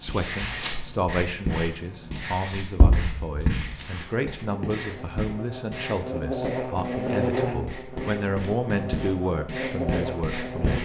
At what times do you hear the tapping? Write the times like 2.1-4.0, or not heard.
2.8-3.6.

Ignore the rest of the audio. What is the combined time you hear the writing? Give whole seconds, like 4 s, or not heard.
11 s.